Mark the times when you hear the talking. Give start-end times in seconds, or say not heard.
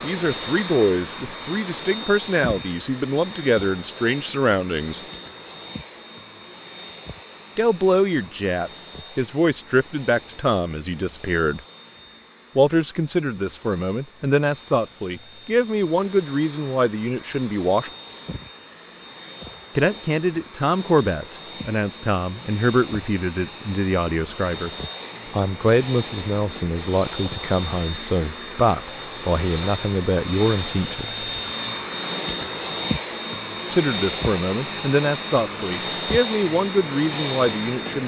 0.0-5.0, 7.5-11.6, 12.6-17.9, 19.8-24.7, 25.3-31.2, 33.7-38.0.